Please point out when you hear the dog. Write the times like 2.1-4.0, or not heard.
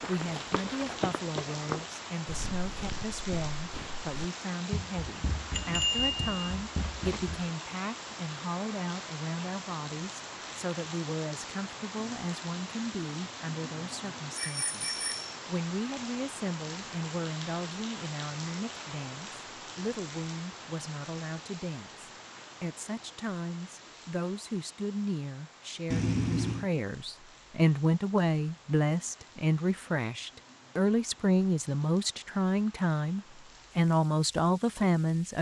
not heard.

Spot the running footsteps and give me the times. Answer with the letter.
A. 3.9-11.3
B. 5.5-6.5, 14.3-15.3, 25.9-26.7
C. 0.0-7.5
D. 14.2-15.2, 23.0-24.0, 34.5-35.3
C.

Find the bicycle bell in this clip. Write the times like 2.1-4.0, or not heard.
5.5-6.5, 14.3-15.3, 25.9-26.7.